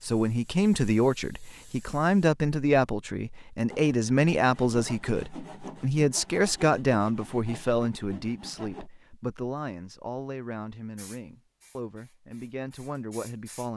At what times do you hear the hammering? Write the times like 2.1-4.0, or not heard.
not heard.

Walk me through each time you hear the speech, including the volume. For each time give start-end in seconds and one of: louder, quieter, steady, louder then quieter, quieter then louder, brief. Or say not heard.
0.0-13.7 quieter.